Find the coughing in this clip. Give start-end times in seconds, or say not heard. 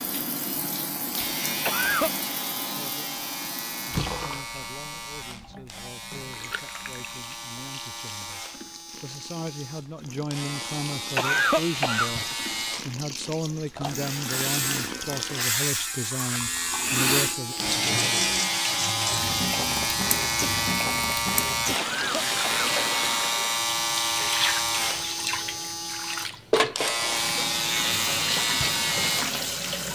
1.6-2.1, 11.2-12.2, 21.8-22.7.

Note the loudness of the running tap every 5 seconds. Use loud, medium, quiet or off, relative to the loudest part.
medium, quiet, medium, loud, loud, loud.